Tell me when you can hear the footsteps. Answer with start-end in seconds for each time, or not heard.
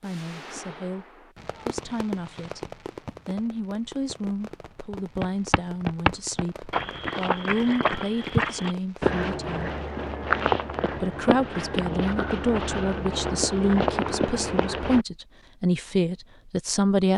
5.2-15.1.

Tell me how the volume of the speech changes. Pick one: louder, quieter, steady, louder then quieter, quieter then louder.
louder.